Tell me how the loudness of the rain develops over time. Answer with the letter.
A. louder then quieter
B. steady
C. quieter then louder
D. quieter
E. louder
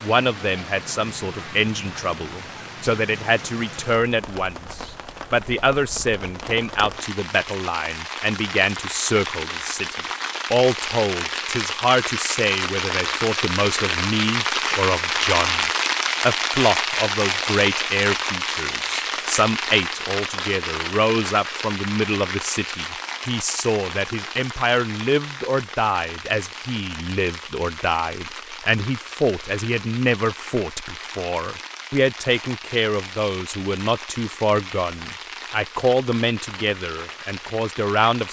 A.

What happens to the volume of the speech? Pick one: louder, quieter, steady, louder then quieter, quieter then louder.
steady.